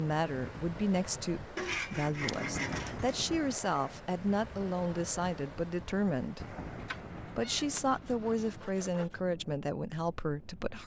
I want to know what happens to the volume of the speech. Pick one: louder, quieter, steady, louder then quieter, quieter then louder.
steady.